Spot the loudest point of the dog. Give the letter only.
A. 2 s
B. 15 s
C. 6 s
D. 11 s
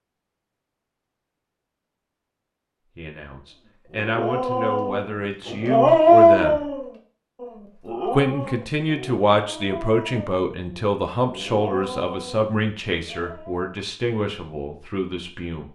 C.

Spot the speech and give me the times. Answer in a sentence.
The speech can be heard from 3.0 to 6.6 s and from 8.1 to 15.6 s.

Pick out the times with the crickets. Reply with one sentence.
The crickets can't be heard in this clip.